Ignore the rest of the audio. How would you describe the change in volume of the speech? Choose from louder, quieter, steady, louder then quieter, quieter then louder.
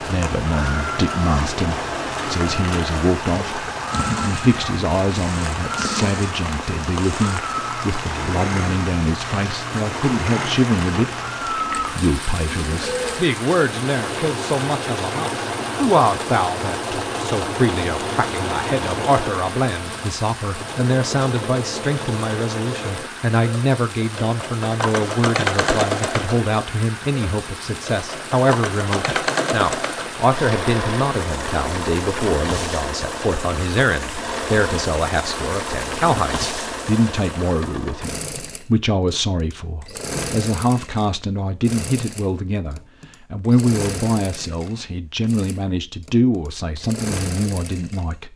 steady.